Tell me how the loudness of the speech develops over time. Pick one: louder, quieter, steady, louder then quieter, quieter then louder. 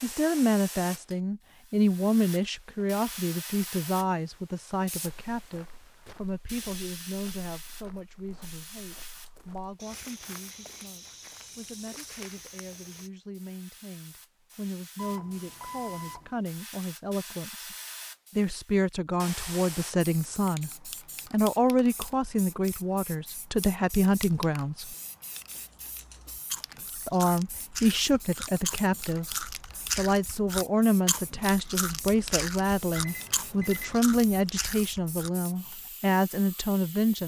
quieter then louder.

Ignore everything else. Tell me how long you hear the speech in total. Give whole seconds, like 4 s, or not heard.
35 s.